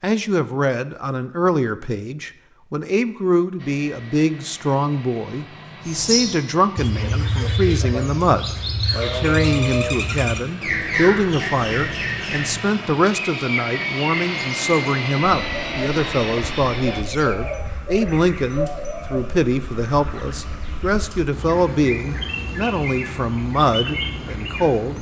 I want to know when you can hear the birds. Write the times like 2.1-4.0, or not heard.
5.8-24.9.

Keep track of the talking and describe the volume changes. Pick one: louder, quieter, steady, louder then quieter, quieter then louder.
steady.